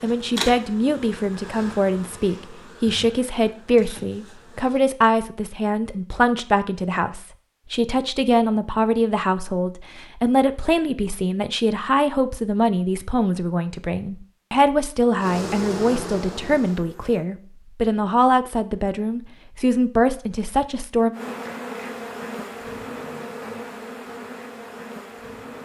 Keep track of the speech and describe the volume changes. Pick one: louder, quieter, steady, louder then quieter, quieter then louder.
steady.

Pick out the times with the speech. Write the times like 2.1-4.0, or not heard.
0.0-21.1.